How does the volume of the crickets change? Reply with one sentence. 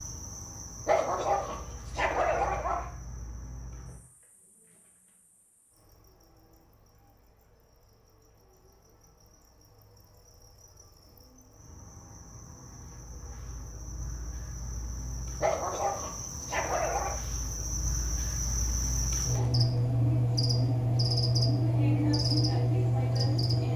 The loudness of the crickets goes down, then up.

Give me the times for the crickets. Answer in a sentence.
The crickets can be heard from 0.0 to 23.7 s.